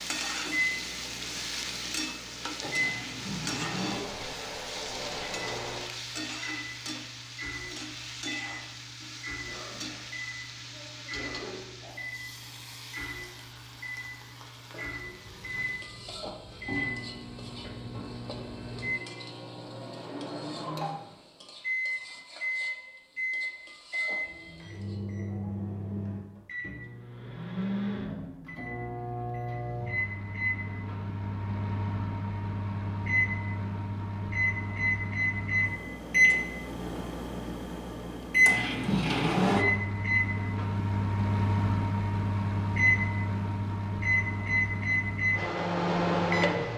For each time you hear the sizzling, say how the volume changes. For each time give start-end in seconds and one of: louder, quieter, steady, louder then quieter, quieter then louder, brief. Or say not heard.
0.0-25.0 quieter.